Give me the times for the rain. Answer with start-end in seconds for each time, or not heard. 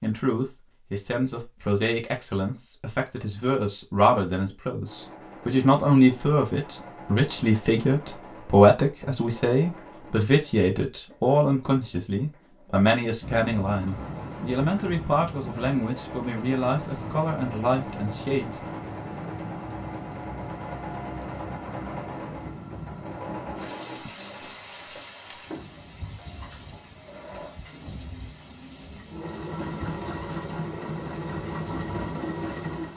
13.2-32.9.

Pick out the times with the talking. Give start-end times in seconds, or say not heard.
0.0-18.4.